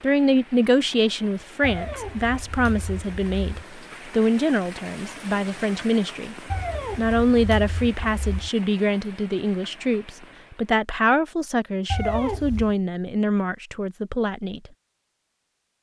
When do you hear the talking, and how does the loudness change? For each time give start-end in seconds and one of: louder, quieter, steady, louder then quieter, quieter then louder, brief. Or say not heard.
0.0-14.7 steady.